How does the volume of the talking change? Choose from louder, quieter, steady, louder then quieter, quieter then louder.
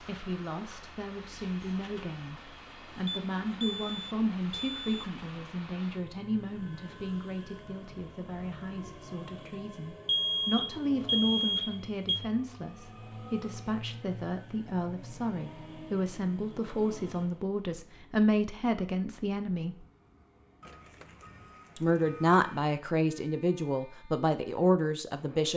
louder.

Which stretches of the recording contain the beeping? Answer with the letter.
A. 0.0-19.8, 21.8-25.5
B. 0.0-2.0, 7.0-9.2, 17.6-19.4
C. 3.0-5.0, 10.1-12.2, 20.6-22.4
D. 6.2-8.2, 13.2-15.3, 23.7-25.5
C.